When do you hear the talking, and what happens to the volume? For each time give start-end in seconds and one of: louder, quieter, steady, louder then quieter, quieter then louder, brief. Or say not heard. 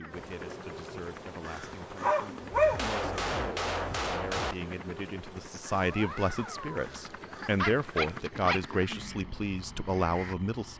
0.0-10.7 louder.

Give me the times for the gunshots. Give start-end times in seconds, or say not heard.
2.6-4.5.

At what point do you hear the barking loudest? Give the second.
3 s.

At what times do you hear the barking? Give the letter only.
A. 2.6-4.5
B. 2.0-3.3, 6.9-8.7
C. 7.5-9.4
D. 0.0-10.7
B.